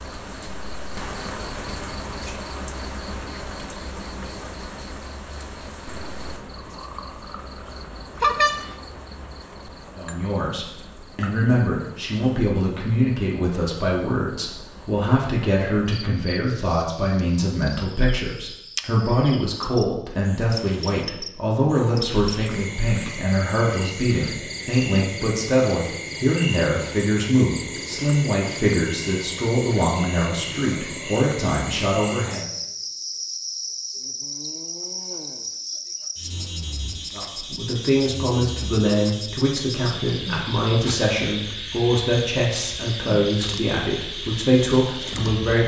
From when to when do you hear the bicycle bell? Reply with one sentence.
You can hear the bicycle bell from 8.2 to 8.7 s.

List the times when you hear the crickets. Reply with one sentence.
The crickets can be heard from 0.0 to 45.6 s.